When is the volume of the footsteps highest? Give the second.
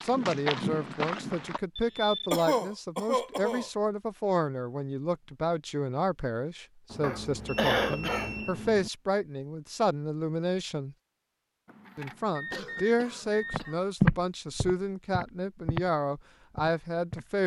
14 s.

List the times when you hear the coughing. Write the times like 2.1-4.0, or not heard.
2.3-3.7, 7.0-8.4, 12.5-13.9.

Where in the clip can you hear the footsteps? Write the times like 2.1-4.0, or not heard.
0.0-1.6, 13.5-15.9, 16.5-17.3.